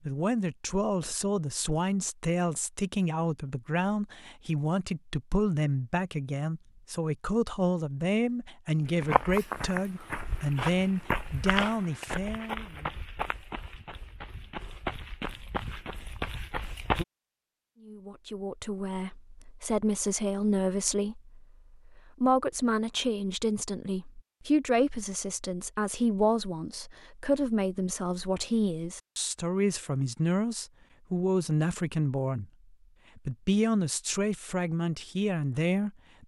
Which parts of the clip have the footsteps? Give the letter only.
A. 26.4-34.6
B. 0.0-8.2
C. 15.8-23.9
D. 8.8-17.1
D.